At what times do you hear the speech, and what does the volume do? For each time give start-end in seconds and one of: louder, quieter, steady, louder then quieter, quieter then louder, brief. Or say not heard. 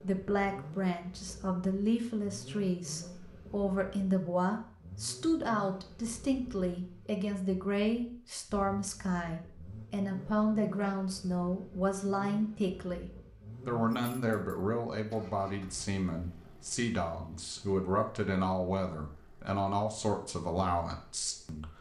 0.0-21.7 steady.